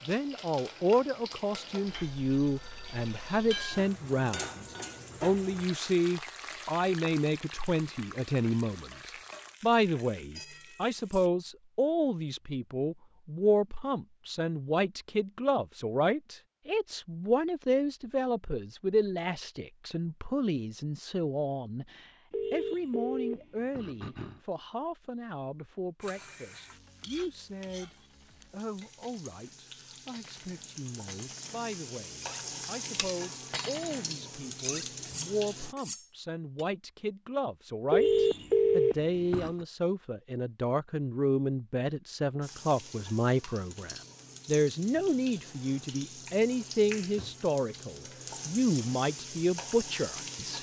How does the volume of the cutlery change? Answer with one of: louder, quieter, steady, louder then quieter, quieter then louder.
louder.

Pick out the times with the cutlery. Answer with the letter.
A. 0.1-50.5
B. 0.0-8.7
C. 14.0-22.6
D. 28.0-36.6
D.